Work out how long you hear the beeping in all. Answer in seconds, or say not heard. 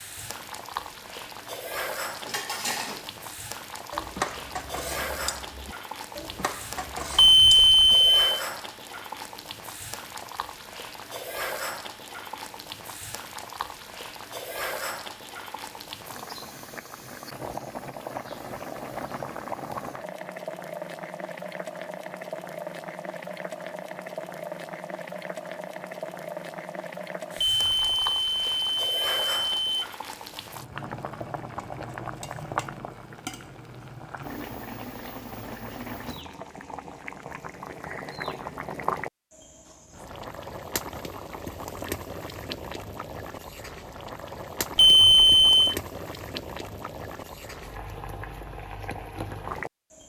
5 s.